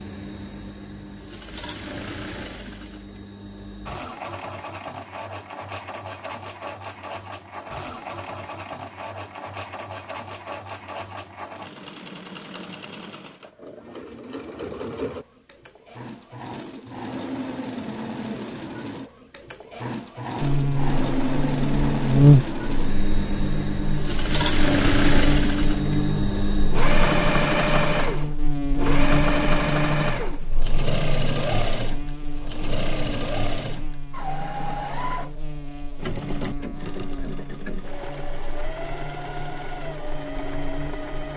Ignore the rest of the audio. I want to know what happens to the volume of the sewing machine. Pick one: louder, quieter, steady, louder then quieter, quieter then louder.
louder then quieter.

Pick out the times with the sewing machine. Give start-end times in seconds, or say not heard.
0.0-41.3.